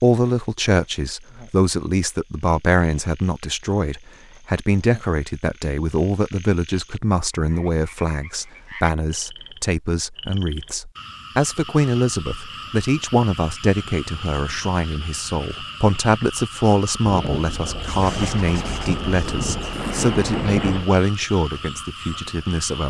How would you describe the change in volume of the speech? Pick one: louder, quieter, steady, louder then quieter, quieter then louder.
steady.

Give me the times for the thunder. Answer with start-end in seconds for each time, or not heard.
17.1-20.9.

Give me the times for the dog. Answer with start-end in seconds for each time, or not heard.
not heard.